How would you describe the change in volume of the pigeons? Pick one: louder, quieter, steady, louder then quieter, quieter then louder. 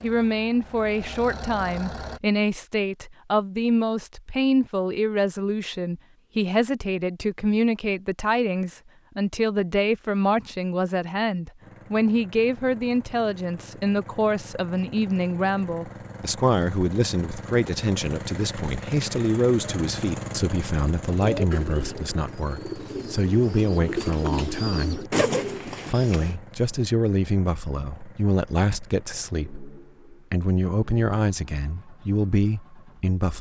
louder.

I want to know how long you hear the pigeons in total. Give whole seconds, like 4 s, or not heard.
5 s.